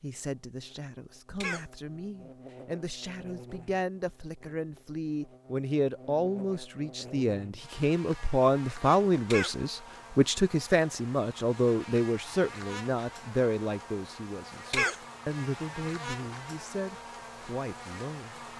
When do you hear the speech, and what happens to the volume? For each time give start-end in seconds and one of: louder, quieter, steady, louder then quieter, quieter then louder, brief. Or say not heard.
0.0-18.4 louder then quieter.